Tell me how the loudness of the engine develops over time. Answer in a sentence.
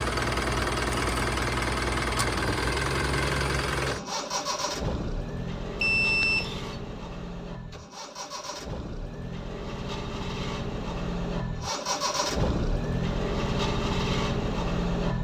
The volume of the engine goes down, then up.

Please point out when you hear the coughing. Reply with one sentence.
You can't hear the coughing here.